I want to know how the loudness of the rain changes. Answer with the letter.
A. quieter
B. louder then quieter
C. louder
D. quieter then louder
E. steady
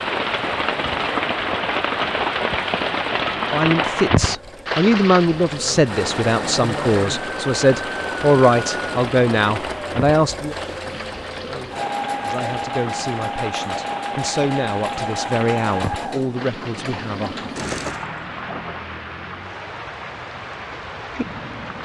A.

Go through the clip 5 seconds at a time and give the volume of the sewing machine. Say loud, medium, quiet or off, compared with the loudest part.
medium, loud, loud, loud, off.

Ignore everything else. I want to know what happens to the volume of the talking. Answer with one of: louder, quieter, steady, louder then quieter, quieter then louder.
quieter.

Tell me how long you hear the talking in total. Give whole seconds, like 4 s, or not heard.
12 s.